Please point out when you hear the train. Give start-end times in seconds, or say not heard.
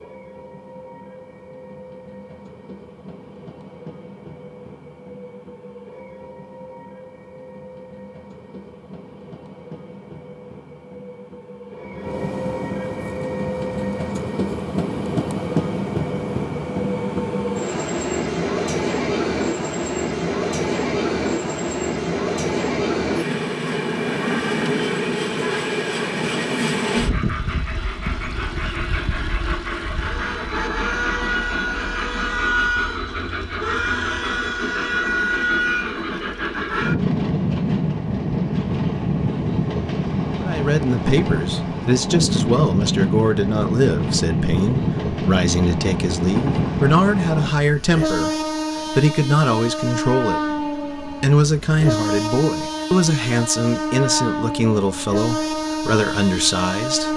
0.0-57.1.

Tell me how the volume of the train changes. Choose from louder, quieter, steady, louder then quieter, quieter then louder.
louder.